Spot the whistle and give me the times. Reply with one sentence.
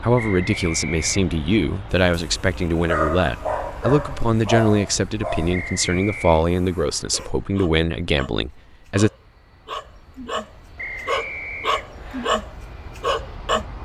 You can hear the whistle from 0.1 to 1.3 s, from 5.5 to 6.5 s and from 10.8 to 12.3 s.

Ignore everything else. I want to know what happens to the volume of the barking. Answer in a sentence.
The loudness of the barking goes down, then up.